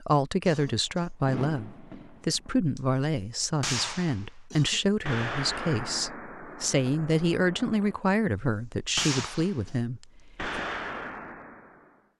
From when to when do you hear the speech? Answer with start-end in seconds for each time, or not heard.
0.0-10.6.